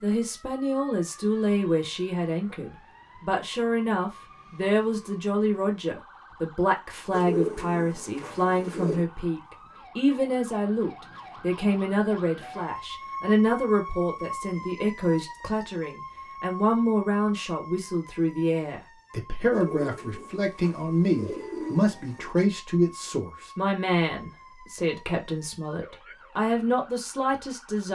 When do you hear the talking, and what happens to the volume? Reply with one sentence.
The talking can be heard from 0.0 to 27.9 s, at a steady volume.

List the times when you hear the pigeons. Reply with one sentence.
You can hear the pigeons from 7.1 to 9.1 s and from 19.5 to 22.3 s.